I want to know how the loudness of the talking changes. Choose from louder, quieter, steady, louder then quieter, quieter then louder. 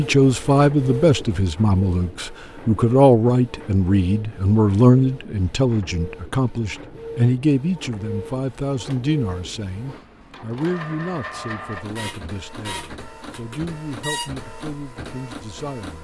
quieter.